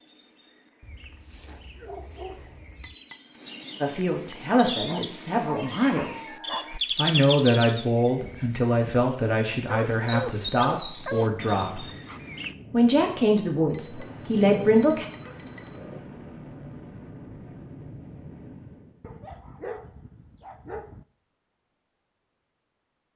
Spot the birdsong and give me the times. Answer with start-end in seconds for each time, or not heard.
0.0-12.6.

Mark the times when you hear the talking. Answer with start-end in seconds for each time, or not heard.
3.8-6.2, 7.0-11.8, 12.7-15.1.